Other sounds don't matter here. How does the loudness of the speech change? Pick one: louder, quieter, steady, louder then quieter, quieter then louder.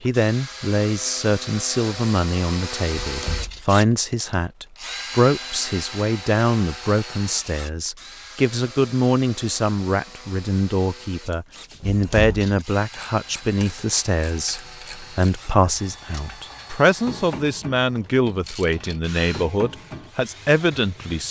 steady.